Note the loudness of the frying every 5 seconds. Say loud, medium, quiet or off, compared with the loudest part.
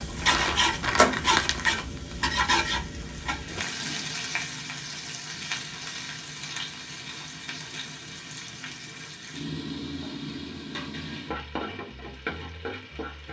loud, medium, medium.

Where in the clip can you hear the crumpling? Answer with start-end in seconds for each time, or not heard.
0.1-2.1.